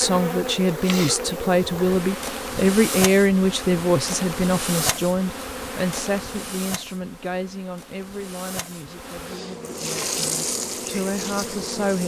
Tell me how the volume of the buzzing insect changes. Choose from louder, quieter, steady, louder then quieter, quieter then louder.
quieter then louder.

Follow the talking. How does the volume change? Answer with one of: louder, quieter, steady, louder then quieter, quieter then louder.
quieter.